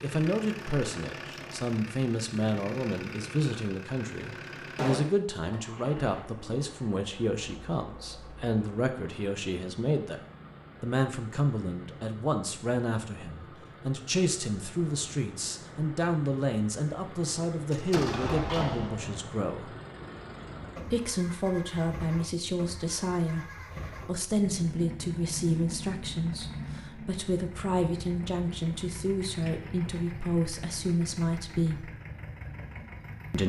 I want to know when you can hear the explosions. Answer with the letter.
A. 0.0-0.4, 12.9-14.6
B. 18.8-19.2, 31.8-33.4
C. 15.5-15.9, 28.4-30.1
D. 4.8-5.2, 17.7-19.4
D.